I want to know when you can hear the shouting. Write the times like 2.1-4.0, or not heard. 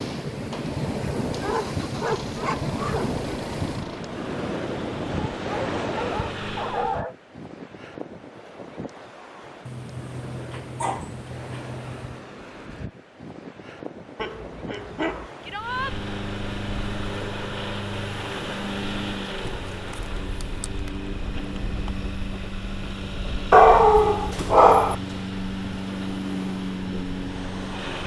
15.4-15.9.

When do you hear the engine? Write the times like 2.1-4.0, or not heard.
0.0-7.0, 15.5-28.0.